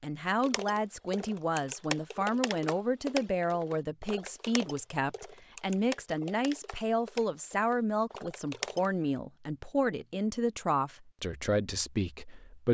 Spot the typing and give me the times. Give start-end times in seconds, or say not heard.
0.4-8.9.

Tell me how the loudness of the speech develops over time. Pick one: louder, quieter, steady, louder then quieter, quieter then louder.
steady.